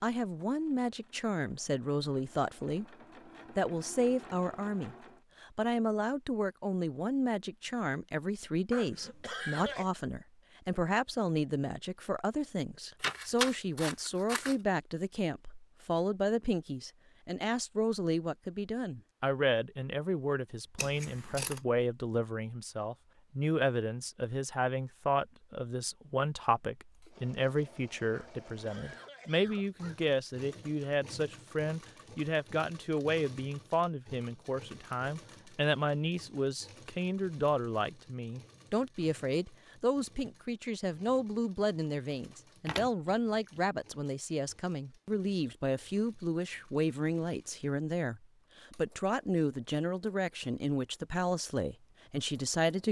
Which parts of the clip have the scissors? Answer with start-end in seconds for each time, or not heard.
13.0-14.6, 20.8-21.6, 42.6-43.6.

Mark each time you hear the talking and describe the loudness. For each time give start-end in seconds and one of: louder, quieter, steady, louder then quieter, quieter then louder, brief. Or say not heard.
0.0-2.9 brief
3.5-52.8 steady.